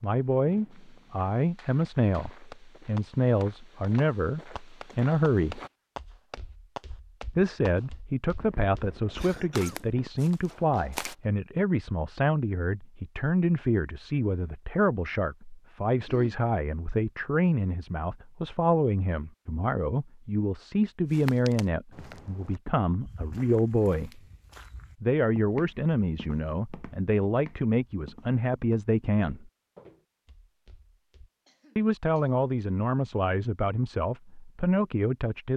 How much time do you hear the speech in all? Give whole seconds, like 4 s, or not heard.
31 s.